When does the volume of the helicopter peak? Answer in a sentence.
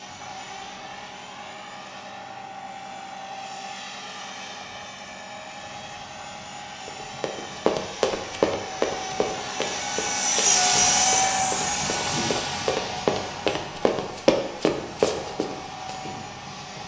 The loudest moment of the helicopter is at 11 seconds.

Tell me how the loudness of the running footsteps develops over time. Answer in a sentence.
The volume of the running footsteps goes down, then up.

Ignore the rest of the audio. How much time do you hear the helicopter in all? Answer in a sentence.
The helicopter can be heard for 17 seconds in total.